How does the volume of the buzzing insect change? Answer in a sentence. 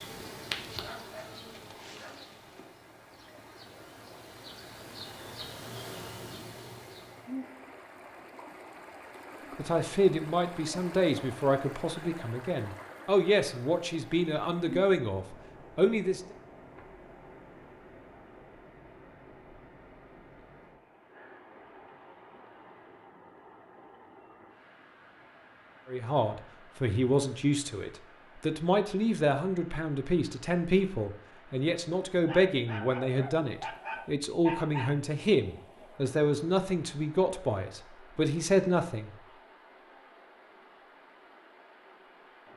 The volume of the buzzing insect goes down, then up.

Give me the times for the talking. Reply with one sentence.
You can hear the talking from 9.6 to 16.2 s and from 25.9 to 39.1 s.